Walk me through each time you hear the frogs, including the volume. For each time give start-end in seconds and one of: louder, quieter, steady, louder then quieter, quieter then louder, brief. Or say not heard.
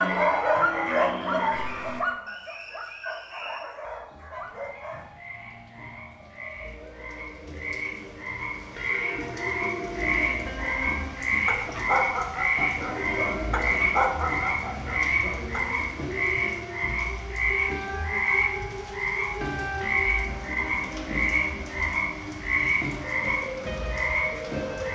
0.0-24.9 louder.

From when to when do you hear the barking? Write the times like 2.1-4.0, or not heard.
0.0-5.1, 11.4-15.7.